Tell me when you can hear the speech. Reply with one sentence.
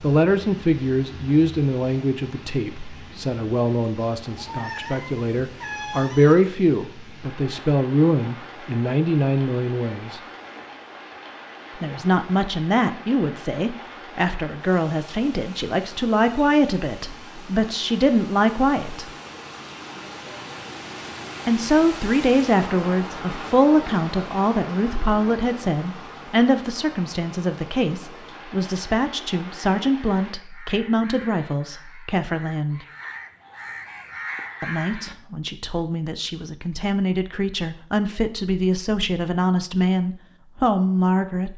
You can hear the speech from 0.0 to 10.2 s, from 11.8 to 19.1 s, from 21.4 to 32.9 s and from 34.6 to 41.5 s.